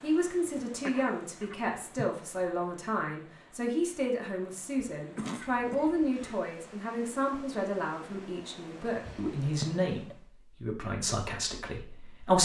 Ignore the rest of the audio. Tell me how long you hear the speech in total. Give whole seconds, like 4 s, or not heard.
12 s.